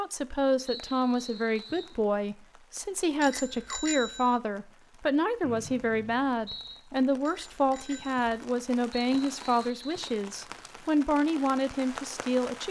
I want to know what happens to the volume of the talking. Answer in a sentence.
The loudness of the talking stays about the same.